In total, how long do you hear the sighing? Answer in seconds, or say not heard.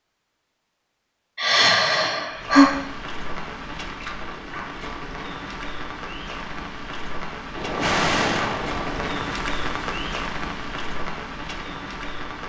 3 s.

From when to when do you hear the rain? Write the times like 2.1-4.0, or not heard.
2.3-12.4.